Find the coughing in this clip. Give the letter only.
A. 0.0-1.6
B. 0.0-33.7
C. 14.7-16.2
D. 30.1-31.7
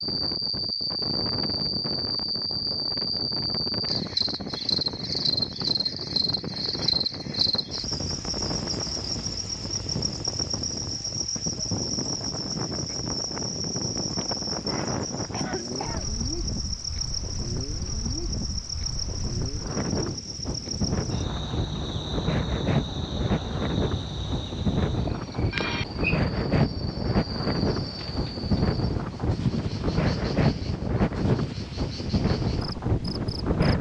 C.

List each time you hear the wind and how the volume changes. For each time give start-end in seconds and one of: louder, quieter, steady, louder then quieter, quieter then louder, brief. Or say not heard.
0.0-33.7 louder.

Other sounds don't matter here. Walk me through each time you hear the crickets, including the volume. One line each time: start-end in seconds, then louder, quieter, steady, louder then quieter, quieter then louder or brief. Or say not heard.
0.0-33.7 quieter.